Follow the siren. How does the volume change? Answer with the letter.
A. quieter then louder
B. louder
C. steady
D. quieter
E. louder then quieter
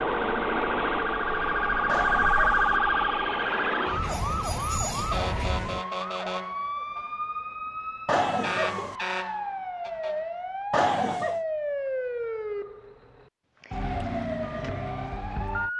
D.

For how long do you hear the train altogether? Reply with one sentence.
You can hear the train for 6 seconds altogether.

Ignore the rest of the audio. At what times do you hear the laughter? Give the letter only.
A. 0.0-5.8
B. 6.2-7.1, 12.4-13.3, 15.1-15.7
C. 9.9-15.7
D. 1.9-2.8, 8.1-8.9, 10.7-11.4
D.